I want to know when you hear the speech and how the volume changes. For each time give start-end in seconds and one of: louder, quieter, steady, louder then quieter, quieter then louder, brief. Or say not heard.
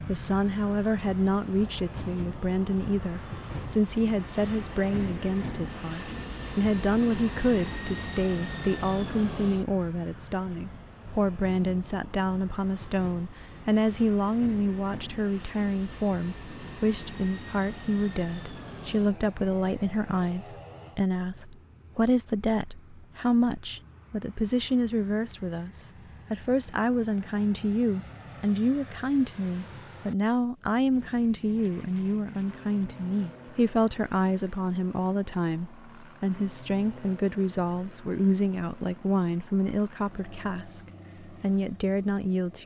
0.1-42.6 steady.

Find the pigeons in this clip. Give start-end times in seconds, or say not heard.
not heard.